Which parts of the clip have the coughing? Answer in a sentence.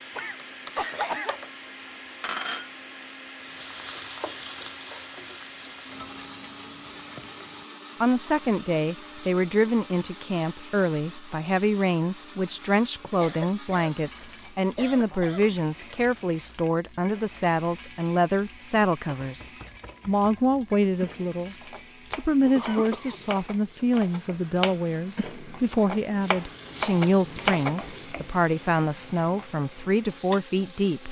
You can hear the coughing from 0.1 to 1.4 s, from 13.2 to 13.9 s, from 14.8 to 15.6 s and from 22.4 to 23.3 s.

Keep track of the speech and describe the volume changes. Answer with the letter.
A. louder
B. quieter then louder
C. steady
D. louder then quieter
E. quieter
C.